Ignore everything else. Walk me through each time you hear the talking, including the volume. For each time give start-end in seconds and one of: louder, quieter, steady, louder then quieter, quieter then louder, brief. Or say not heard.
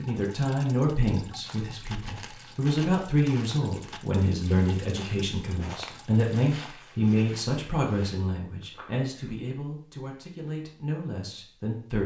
0.0-12.0 quieter.